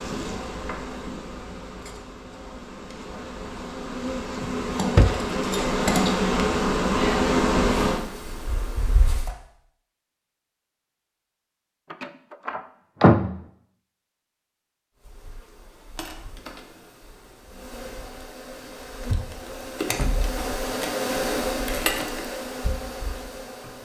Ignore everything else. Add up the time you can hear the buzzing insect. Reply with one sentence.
You can hear the buzzing insect for 18 seconds altogether.